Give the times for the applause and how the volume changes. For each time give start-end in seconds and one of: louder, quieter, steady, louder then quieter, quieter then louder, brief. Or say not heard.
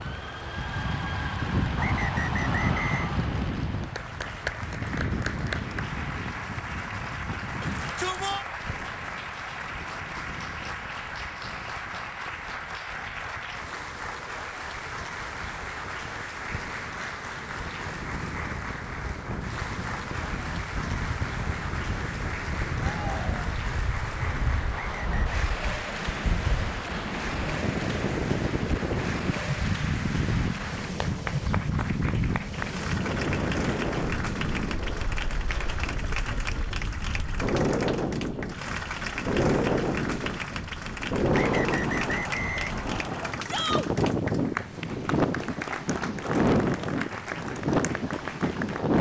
0.0-48.9 steady.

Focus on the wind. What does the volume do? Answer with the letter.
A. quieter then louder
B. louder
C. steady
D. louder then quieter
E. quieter
A.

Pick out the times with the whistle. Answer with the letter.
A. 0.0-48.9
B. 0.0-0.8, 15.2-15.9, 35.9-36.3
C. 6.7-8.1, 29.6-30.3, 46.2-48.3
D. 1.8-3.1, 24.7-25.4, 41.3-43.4
D.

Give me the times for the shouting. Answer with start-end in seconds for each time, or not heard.
7.6-8.4, 22.9-23.5, 43.5-43.9.